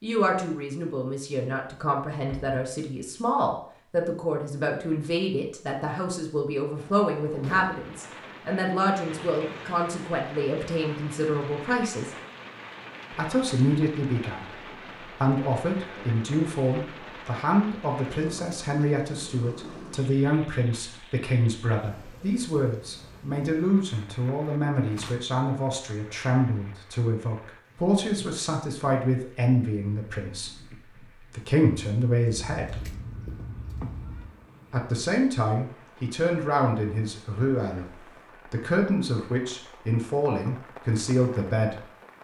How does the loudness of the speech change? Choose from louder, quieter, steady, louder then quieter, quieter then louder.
steady.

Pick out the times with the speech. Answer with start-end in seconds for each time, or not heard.
0.0-12.1, 13.1-33.0, 34.7-41.9.